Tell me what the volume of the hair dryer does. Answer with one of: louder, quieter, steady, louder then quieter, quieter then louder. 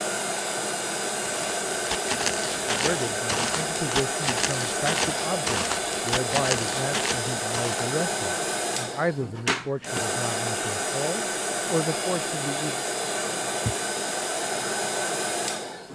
steady.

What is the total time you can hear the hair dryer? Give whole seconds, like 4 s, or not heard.
16 s.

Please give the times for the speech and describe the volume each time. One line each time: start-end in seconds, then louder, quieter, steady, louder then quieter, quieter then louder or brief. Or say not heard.
2.6-12.8 steady.